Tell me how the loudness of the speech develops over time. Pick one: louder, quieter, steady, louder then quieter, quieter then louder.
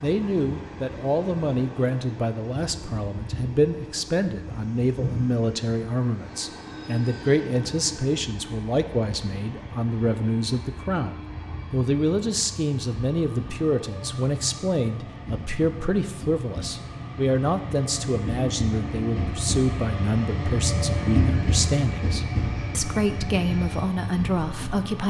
steady.